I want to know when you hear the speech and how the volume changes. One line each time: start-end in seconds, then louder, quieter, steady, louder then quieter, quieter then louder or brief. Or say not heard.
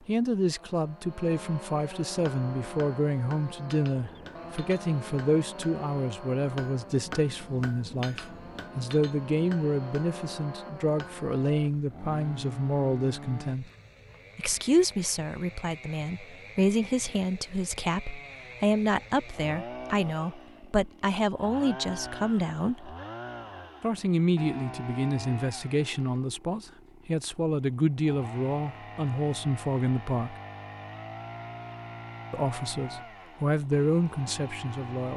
0.1-13.7 steady
14.3-22.9 steady
23.8-30.4 steady
32.3-35.1 brief.